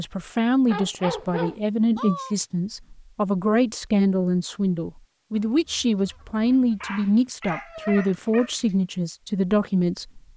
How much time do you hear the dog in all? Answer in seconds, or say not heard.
4 s.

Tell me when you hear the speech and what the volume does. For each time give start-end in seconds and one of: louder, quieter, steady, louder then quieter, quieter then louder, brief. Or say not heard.
0.0-10.3 steady.